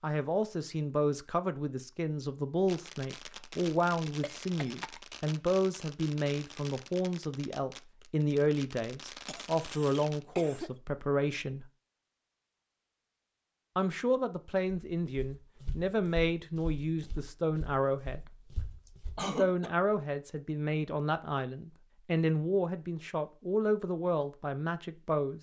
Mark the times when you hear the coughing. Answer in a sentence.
The coughing can be heard from 4.2 to 5.0 s, from 9.2 to 10.7 s and from 19.1 to 19.7 s.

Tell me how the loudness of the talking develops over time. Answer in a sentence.
The volume of the talking stays about the same.